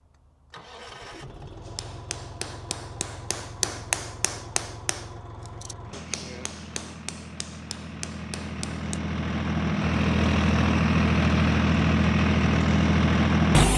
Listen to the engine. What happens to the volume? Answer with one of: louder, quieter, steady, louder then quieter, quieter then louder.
louder.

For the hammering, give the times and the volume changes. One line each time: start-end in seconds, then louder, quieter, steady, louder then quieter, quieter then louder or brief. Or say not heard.
1.6-9.0 louder then quieter.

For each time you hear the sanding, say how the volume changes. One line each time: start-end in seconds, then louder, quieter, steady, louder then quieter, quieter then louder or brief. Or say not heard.
not heard.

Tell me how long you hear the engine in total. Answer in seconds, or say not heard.
14 s.